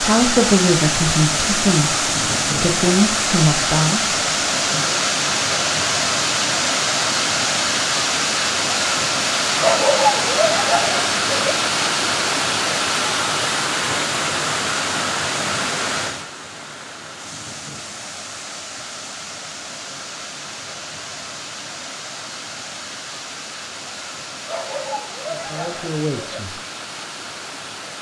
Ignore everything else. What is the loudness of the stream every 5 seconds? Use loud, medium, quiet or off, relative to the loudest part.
loud, loud, loud, medium, quiet, quiet.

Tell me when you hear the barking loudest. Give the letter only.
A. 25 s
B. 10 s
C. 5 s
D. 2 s
B.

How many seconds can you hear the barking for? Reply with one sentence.
You can hear the barking for 4 seconds altogether.